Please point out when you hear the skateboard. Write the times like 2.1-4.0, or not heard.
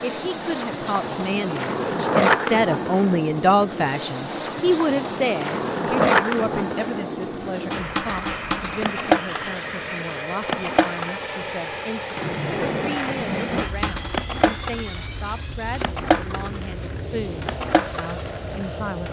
0.0-19.0.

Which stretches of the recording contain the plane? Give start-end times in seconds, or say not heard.
0.0-19.0.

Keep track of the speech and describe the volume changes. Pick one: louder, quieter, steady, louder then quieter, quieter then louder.
quieter.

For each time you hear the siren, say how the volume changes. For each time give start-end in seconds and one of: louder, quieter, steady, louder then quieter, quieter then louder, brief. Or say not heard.
not heard.